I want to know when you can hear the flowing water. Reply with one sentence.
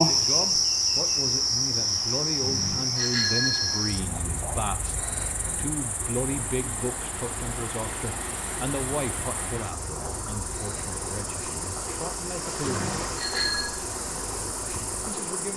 You can hear the flowing water from 0.0 to 15.5 s.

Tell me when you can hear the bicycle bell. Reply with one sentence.
You can hear the bicycle bell from 2.4 to 4.0 s and from 12.6 to 13.7 s.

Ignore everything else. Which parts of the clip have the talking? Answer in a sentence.
You can hear the talking from 0.0 to 12.9 s and from 15.1 to 15.5 s.